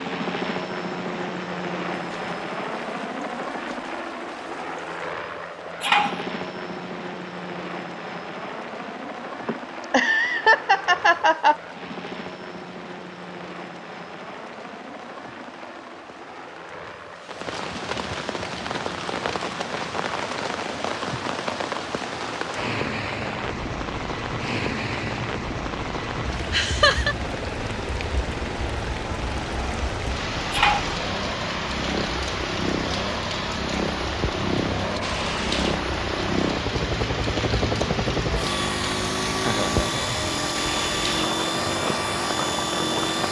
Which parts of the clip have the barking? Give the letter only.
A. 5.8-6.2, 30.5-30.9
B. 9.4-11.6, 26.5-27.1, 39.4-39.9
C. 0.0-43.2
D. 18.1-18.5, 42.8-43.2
A.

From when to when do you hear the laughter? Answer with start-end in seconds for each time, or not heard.
9.4-11.6, 26.5-27.1, 39.4-39.9.